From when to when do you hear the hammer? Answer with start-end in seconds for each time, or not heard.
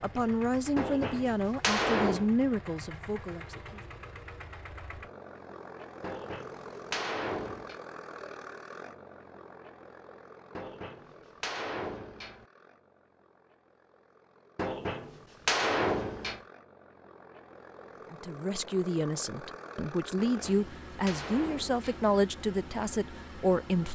0.8-2.3, 6.0-7.8, 10.6-12.4, 14.6-16.4, 20.1-22.1.